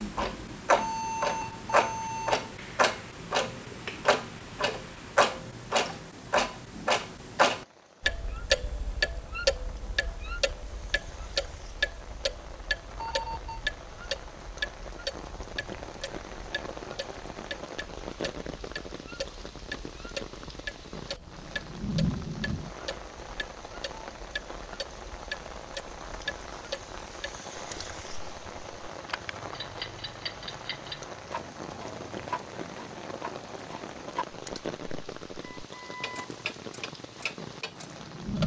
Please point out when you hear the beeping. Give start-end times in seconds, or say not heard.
0.8-2.5, 12.9-13.7, 35.5-36.2.